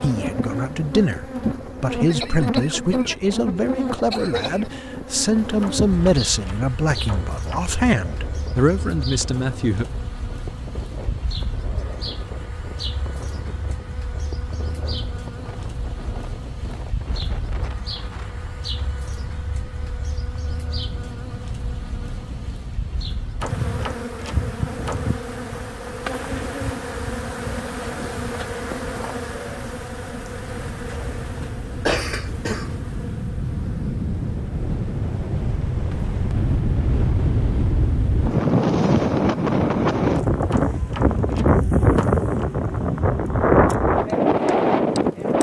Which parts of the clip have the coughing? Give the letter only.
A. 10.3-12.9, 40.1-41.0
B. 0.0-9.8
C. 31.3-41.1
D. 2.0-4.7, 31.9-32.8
D.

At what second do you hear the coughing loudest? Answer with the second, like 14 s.
32 s.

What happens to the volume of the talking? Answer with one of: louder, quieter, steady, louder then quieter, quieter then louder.
steady.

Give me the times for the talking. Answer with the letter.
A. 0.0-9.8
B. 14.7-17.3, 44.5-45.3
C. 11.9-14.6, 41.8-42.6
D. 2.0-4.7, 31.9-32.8
A.